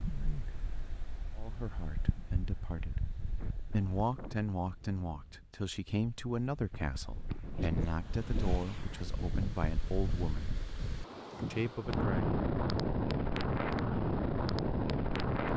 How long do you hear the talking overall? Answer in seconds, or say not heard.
10 s.